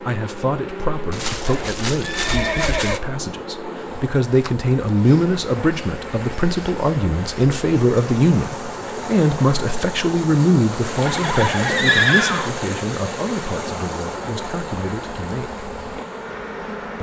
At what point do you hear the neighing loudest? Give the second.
12 s.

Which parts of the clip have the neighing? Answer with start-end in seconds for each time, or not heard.
1.1-3.0, 11.1-12.5.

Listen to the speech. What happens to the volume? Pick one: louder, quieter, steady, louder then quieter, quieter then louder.
louder then quieter.